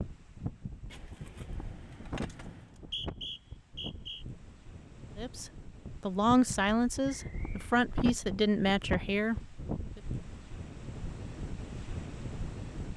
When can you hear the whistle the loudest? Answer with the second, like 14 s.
3 s.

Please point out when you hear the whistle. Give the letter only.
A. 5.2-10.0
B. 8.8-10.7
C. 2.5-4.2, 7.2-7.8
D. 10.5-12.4
C.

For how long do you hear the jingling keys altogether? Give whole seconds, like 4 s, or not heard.
2 s.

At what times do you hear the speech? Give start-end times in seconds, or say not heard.
5.2-10.0.